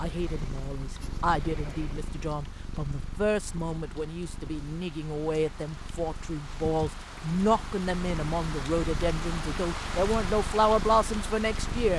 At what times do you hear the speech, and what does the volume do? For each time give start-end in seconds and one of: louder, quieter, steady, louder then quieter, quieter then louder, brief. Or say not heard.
0.0-11.9 louder.